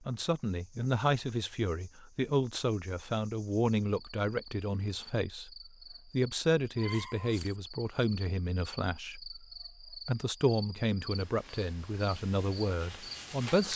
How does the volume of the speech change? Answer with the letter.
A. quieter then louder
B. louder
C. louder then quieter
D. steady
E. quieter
D.